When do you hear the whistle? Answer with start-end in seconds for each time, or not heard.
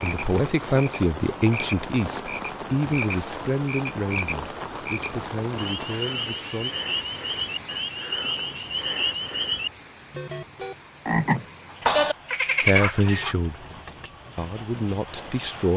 not heard.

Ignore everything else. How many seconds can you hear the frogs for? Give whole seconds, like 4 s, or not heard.
13 s.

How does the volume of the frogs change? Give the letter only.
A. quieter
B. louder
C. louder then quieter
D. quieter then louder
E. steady
B.